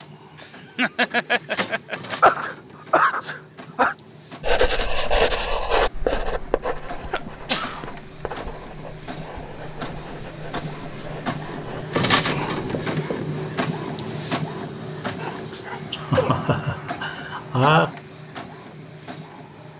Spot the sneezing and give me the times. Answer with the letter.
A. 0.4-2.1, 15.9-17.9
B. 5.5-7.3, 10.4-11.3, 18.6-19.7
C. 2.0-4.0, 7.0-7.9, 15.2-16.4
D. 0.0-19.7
C.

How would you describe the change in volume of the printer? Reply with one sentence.
The volume of the printer goes up, then down.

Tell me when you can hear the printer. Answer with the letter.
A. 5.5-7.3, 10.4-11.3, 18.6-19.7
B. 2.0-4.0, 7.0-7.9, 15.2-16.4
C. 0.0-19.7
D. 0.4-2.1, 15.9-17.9
C.